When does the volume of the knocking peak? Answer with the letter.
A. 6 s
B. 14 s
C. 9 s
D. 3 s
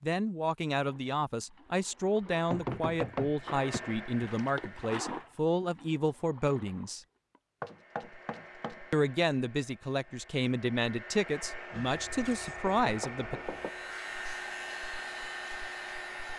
D.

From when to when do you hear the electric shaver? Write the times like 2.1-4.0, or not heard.
13.4-16.3.